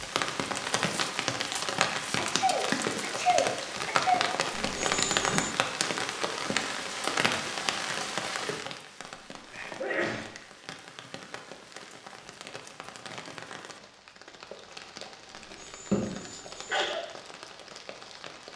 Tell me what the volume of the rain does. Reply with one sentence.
The volume of the rain goes down.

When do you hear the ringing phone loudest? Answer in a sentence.
The volume of the ringing phone peaks at 5 seconds.